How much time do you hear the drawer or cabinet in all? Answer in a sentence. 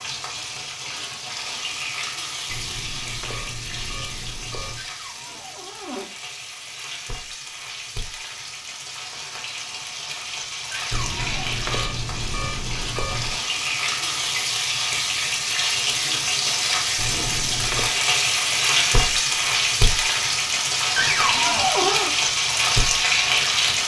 The drawer or cabinet can be heard for 3 seconds in total.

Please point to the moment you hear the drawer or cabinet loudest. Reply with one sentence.
The loudest moment of the drawer or cabinet is at 22 seconds.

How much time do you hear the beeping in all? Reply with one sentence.
The beeping can be heard for 6 seconds in total.